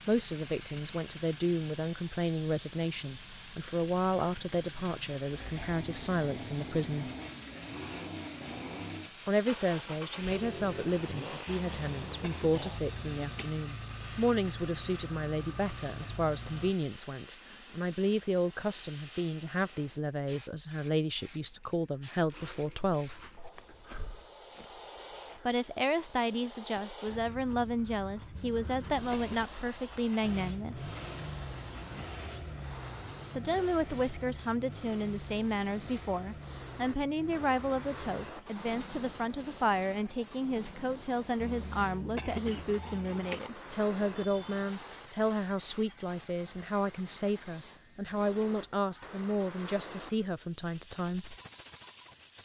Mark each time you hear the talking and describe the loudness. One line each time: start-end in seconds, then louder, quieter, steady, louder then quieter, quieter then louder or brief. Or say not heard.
0.1-7.1 steady
9.2-23.2 steady
25.4-30.9 steady
33.4-51.4 steady.